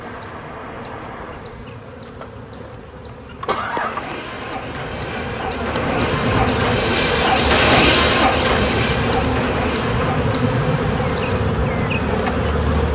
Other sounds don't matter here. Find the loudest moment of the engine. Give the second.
8 s.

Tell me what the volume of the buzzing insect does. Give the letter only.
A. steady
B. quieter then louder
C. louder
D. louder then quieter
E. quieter
C.